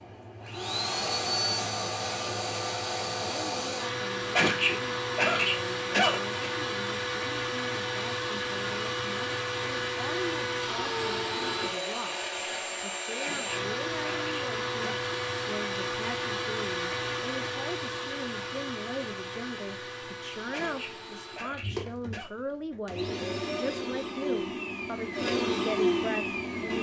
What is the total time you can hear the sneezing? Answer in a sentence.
The sneezing can be heard for 6 seconds in total.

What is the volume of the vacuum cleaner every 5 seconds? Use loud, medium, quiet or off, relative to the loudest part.
loud, loud, loud, medium, medium, loud.